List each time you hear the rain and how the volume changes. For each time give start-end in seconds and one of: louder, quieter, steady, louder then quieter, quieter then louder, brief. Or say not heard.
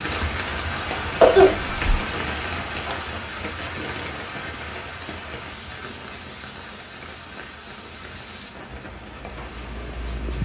0.0-10.3 quieter.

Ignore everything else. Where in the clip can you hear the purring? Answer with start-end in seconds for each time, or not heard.
8.8-10.3.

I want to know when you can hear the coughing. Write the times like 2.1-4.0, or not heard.
1.2-2.0.